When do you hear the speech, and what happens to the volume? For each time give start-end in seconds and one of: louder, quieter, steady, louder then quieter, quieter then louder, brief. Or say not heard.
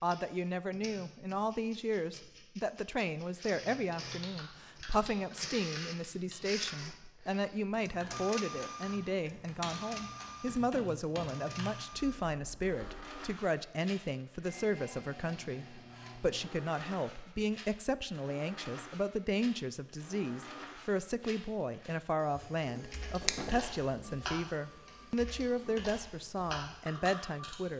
0.0-27.7 steady.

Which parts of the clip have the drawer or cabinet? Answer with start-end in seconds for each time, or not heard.
22.9-23.6.